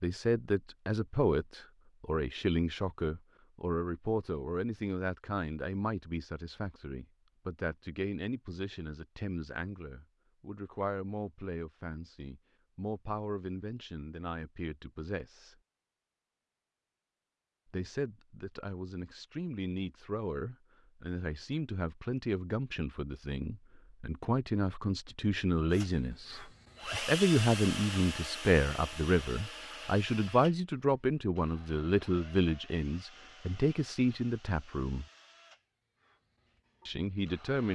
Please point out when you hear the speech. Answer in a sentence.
The speech can be heard from 0.0 to 15.6 s, from 17.7 to 35.0 s and from 36.9 to 37.7 s.